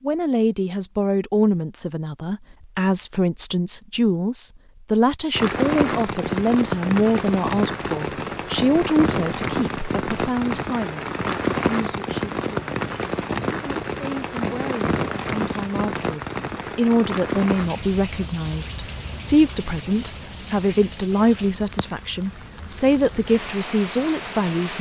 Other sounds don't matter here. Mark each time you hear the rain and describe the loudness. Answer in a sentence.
You can hear the rain from 5.3 to 24.7 s, getting quieter.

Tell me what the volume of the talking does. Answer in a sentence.
The volume of the talking goes down, then up.